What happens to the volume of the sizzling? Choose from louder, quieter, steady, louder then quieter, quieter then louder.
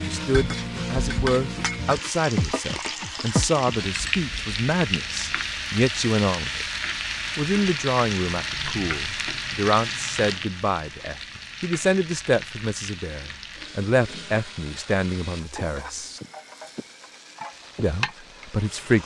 quieter.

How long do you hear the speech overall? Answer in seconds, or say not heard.
17 s.